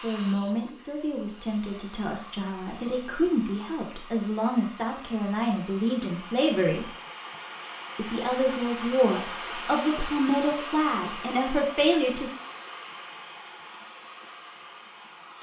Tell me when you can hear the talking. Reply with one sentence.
You can hear the talking from 0.0 to 6.8 s and from 8.0 to 12.3 s.